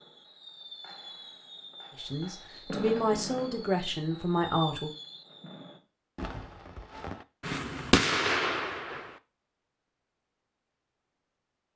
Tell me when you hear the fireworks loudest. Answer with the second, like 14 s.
8 s.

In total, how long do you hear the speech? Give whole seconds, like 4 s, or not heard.
3 s.